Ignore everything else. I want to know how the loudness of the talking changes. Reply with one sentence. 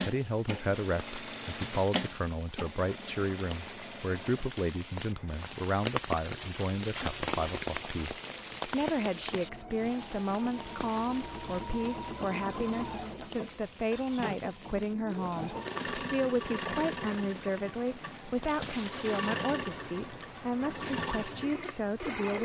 The volume of the talking stays about the same.